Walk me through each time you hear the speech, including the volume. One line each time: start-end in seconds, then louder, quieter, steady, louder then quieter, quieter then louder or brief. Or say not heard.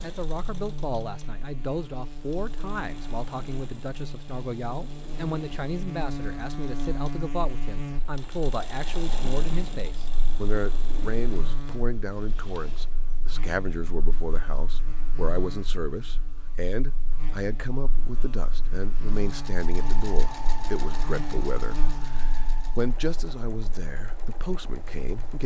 0.0-25.4 steady.